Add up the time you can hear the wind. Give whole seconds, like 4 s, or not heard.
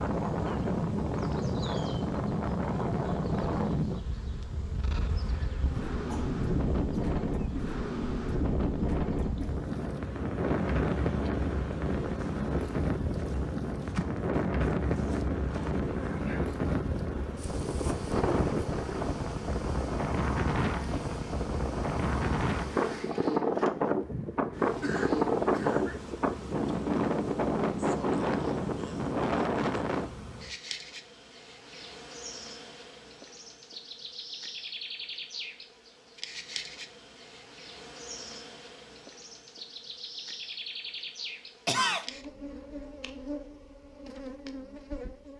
30 s.